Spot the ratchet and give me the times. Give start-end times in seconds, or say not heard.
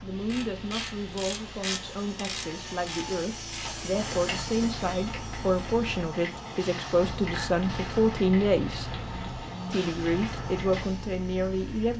0.2-10.8.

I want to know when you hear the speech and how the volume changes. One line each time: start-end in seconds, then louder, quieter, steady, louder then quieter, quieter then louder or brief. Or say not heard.
0.0-8.9 louder
9.7-11.9 brief.